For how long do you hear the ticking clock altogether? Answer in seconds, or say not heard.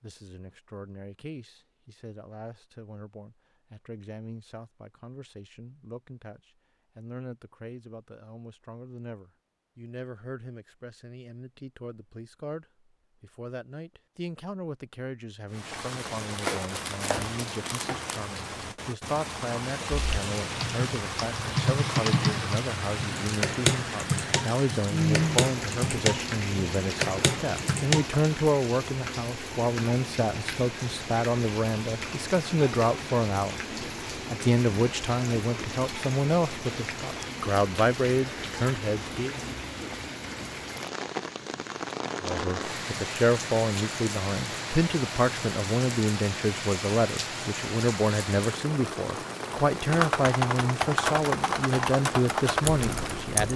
not heard.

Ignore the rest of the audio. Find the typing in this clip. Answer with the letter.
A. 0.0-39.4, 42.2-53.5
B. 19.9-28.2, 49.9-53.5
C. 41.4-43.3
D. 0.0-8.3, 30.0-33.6
B.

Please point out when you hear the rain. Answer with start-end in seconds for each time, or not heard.
15.5-53.5.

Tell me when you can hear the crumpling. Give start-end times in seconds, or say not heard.
16.3-18.2.